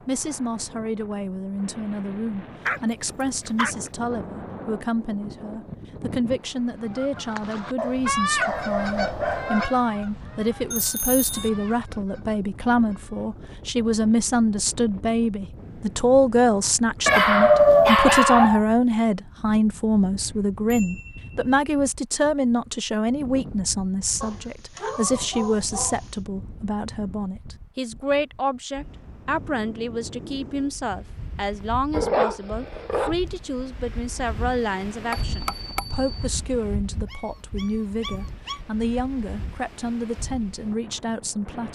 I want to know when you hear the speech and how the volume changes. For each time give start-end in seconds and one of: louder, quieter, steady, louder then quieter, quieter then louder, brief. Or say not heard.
0.1-41.7 louder then quieter.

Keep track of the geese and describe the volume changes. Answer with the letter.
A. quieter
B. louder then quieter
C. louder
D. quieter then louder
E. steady
A.